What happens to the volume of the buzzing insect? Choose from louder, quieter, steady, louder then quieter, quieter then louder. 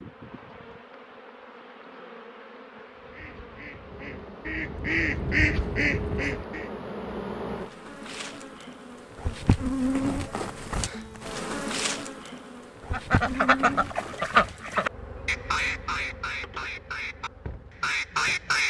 louder then quieter.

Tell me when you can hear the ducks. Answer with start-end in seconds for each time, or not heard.
2.9-6.7, 12.9-18.6.